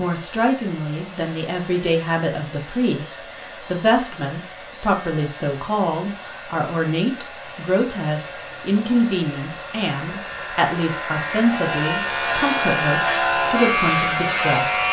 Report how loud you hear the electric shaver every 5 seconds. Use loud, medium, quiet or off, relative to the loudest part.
quiet, quiet, loud.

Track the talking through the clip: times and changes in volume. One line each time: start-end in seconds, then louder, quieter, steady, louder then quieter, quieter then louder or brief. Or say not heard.
0.0-14.8 steady.